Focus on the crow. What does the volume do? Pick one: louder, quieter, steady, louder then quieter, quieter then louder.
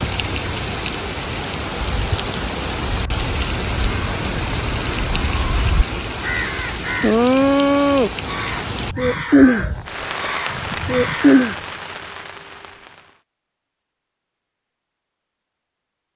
louder then quieter.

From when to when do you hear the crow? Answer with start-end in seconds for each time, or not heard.
2.9-11.6.